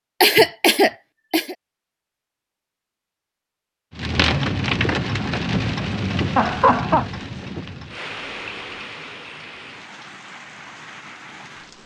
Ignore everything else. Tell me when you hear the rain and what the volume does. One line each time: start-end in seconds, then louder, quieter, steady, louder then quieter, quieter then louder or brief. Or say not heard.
3.9-11.8 quieter.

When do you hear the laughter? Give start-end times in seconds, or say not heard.
0.2-1.6, 6.3-7.1.